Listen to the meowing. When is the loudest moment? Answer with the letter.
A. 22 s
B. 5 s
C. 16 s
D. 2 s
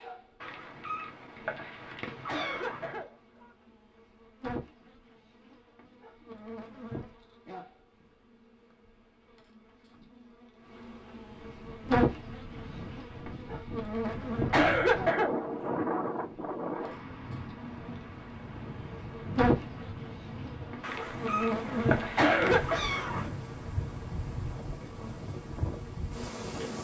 A.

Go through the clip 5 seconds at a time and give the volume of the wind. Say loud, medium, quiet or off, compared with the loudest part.
off, off, medium, loud, medium, medium.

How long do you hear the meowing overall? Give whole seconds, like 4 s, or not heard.
5 s.